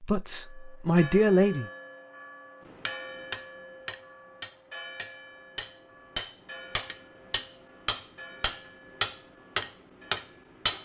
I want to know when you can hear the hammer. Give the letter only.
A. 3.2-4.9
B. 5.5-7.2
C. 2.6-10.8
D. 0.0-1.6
C.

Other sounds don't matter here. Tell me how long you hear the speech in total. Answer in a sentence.
You can hear the speech for 2 seconds altogether.